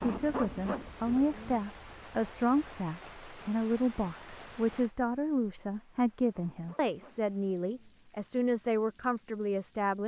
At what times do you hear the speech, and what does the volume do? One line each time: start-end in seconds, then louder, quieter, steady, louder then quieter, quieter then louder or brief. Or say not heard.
0.0-10.0 steady.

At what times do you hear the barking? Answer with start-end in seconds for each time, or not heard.
0.0-1.6, 6.3-8.0.